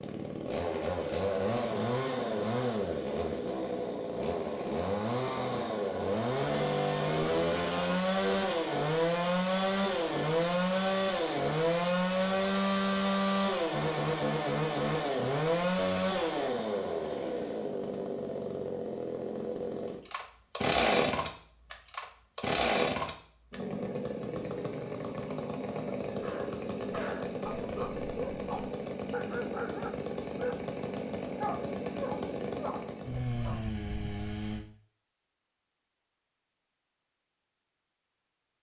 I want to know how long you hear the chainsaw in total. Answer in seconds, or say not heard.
35 s.